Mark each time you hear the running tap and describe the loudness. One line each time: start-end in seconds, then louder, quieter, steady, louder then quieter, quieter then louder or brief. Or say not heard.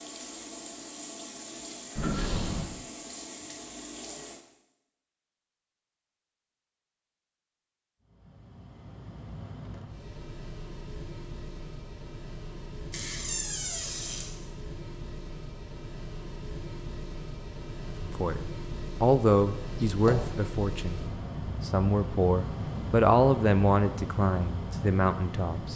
0.0-4.4 steady.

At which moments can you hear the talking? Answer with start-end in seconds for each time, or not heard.
18.0-20.9, 21.6-25.7.